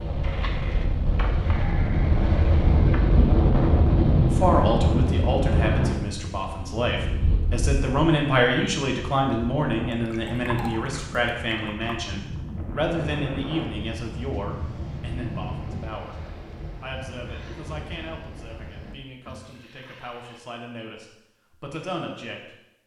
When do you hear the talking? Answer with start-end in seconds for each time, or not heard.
4.2-16.1, 16.8-22.6.